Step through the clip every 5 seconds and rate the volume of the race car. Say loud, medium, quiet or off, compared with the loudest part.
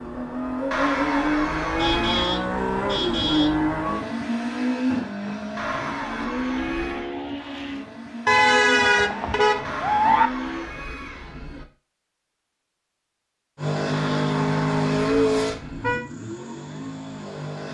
loud, medium, loud, loud.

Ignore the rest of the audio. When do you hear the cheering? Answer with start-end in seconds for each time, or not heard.
0.7-2.3, 5.5-7.2, 9.6-11.7, 13.9-15.9.